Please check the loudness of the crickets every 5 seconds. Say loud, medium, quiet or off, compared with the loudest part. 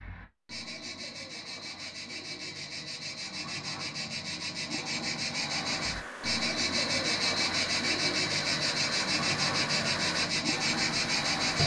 medium, loud, loud.